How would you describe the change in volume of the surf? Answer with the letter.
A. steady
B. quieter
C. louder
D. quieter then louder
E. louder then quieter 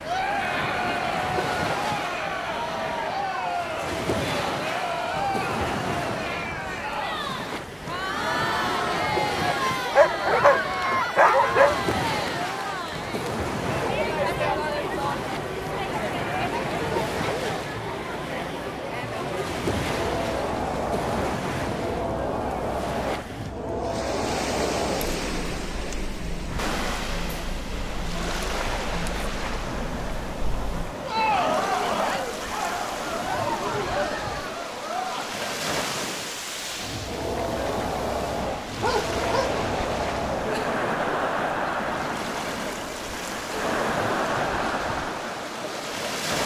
A.